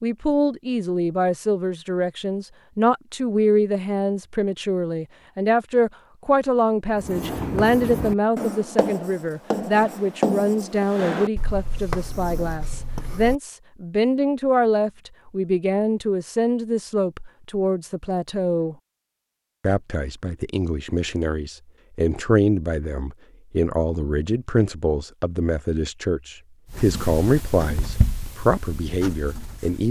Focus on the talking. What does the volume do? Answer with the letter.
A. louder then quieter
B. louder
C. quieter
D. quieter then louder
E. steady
E.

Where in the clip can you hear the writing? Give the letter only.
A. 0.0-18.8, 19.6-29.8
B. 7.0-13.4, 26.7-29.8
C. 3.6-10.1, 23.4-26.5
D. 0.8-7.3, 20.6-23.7
B.